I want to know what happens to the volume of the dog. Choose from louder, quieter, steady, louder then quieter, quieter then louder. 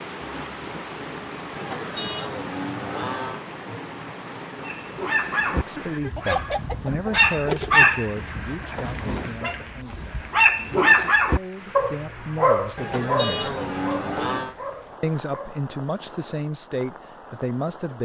louder then quieter.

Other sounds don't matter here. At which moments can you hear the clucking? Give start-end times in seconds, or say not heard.
6.2-7.9.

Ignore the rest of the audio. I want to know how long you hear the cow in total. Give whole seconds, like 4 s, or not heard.
4 s.